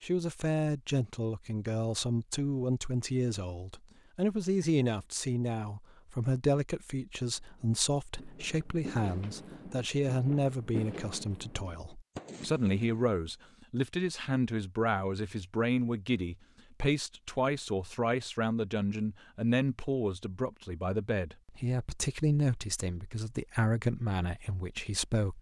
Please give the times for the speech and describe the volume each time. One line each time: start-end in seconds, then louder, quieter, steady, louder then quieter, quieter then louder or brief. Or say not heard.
0.0-25.3 steady.